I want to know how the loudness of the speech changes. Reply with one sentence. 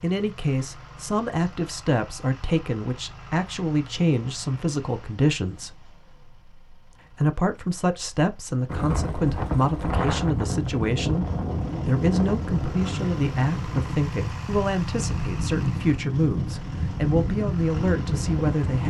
The loudness of the speech stays about the same.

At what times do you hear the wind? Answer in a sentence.
The wind can be heard from 8.7 to 18.8 s.